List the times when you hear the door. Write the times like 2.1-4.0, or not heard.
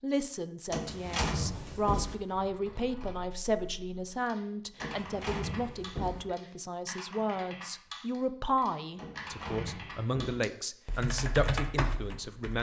0.7-2.1, 4.8-6.2, 8.9-10.4.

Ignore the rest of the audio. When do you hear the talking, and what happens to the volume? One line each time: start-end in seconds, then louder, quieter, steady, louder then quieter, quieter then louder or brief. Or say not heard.
0.0-12.5 steady.